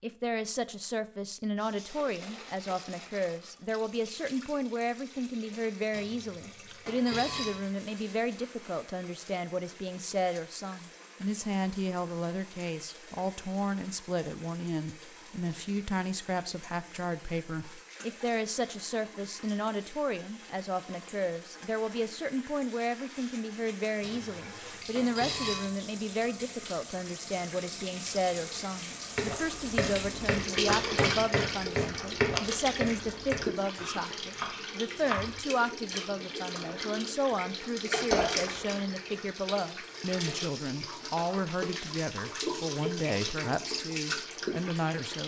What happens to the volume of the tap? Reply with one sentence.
The volume of the tap goes up.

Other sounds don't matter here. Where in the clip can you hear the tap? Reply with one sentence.
You can hear the tap from 1.6 to 45.2 s.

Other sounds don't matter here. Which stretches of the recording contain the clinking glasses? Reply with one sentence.
The clinking glasses can be heard from 5.9 to 7.7 s, from 24.0 to 25.8 s and from 38.1 to 38.6 s.